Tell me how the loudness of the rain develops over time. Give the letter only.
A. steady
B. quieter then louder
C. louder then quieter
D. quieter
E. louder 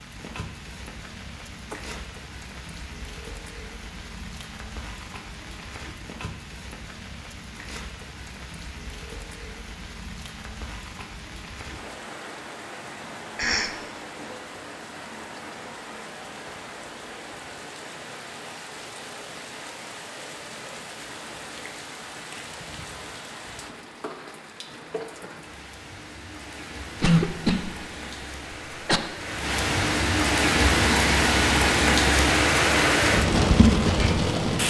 E.